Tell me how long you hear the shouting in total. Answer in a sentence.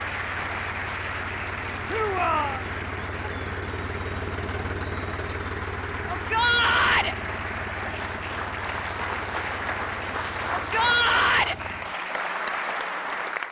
The shouting can be heard for 3 seconds in total.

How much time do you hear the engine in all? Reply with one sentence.
The engine can be heard for 12 seconds in total.